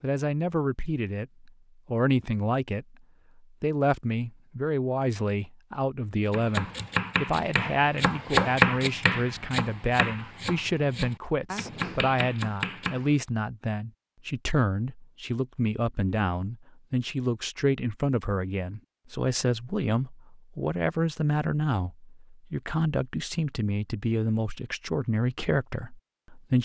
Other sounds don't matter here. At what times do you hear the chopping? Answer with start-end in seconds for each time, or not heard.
6.3-13.2.